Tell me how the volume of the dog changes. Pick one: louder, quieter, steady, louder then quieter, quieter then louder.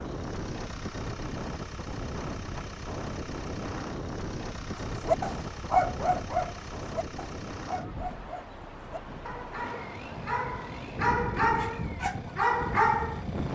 quieter then louder.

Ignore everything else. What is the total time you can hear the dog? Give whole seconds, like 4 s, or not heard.
9 s.